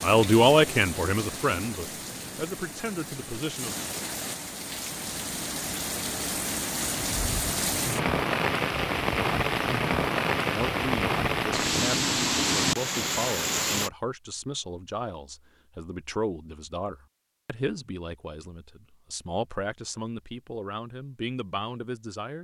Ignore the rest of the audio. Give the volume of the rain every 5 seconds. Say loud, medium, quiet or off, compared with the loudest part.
medium, loud, loud, off, off.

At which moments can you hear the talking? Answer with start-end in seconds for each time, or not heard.
0.0-3.8, 10.4-22.3.